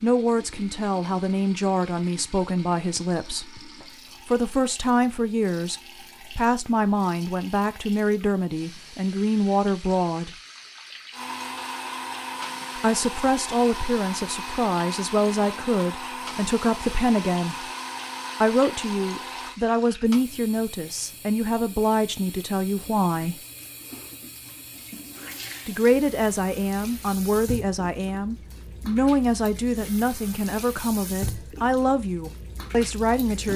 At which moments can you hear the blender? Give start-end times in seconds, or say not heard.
11.1-19.6.